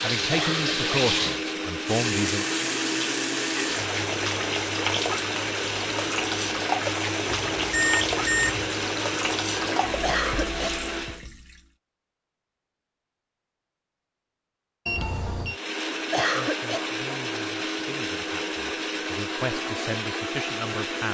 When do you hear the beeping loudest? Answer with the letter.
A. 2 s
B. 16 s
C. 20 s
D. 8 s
D.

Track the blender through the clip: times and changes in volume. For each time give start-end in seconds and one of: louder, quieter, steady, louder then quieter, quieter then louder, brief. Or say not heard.
0.0-11.2 steady
15.4-21.0 steady.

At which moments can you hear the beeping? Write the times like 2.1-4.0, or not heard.
7.3-8.7, 14.8-15.6.